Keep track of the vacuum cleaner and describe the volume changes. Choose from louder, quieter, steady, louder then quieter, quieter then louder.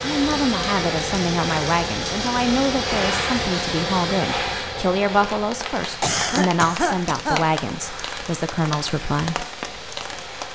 quieter.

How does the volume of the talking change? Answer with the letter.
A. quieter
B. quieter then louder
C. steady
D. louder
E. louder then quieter
C.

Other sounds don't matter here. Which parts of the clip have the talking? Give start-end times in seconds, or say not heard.
0.0-9.4.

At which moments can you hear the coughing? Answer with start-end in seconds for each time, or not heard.
6.0-7.5.